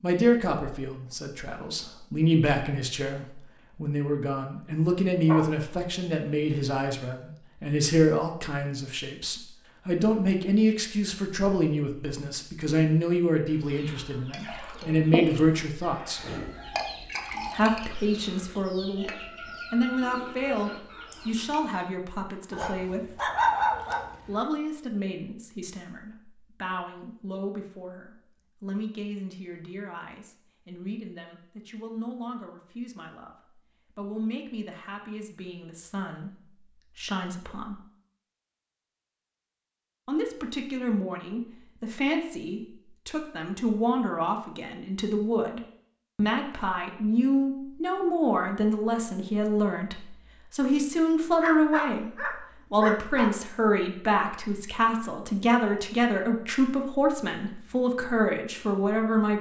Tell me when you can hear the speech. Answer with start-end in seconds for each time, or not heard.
0.0-16.2, 17.5-19.1, 19.7-23.2, 24.2-37.8, 40.0-59.3.